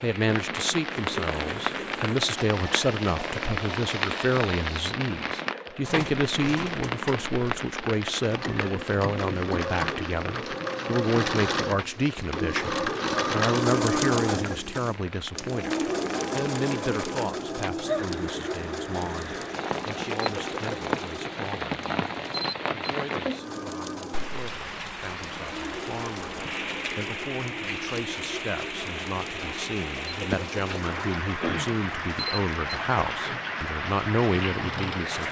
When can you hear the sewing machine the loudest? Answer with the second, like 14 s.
14 s.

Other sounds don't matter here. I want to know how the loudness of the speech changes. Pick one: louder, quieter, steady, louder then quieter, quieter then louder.
quieter then louder.